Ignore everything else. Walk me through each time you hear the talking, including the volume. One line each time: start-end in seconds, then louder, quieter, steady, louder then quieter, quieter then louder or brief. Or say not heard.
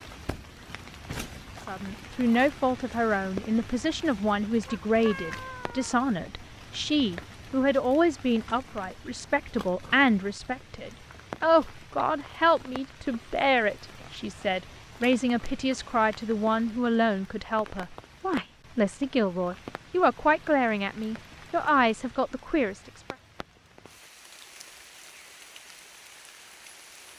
1.6-23.1 steady.